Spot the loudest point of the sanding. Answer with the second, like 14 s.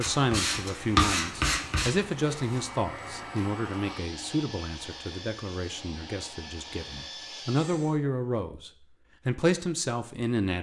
1 s.